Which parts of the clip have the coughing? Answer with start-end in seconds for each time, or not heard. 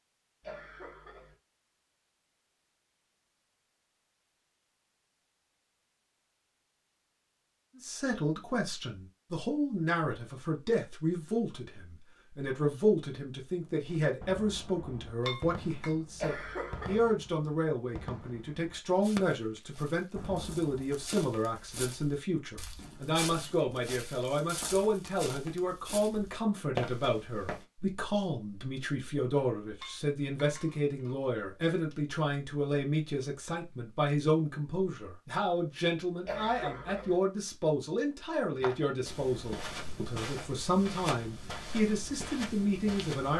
0.4-1.4, 16.1-17.1, 36.2-37.2.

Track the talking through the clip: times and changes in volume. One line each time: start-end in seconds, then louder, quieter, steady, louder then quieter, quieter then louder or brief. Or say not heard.
7.8-43.3 steady.